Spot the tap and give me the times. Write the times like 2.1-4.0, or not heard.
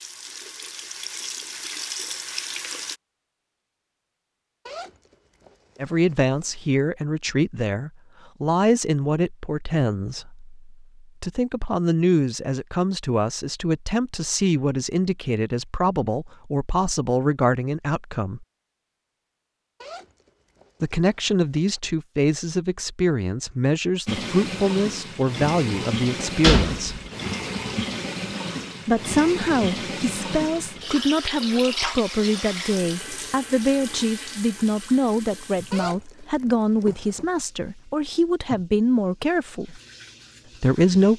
0.0-3.0, 24.1-41.1.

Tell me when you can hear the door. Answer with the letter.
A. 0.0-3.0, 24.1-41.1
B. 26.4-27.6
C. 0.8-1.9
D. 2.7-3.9
B.